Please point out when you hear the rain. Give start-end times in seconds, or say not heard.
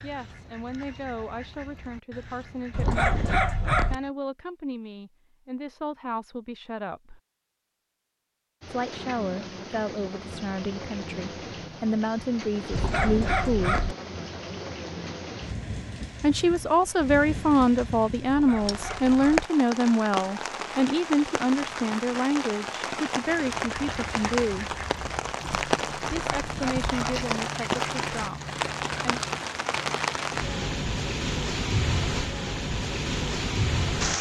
8.6-34.1.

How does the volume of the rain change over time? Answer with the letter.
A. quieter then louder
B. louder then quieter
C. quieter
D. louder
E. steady
D.